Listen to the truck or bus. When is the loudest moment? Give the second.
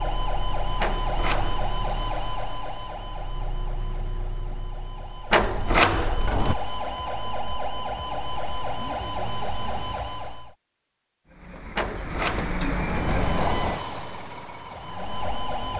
13 s.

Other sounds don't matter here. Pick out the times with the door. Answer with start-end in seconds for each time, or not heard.
0.8-1.7, 5.3-6.5, 11.8-13.8.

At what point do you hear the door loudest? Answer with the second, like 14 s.
6 s.